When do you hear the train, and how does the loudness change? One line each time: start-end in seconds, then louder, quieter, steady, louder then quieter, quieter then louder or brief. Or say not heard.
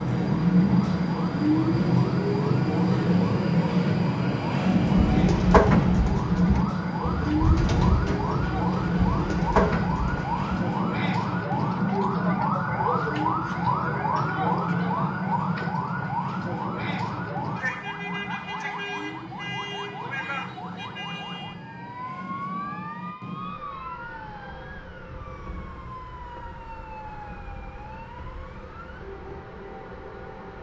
0.0-30.5 quieter.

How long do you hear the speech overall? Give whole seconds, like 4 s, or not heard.
not heard.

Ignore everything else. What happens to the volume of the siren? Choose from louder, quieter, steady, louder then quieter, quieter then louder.
louder then quieter.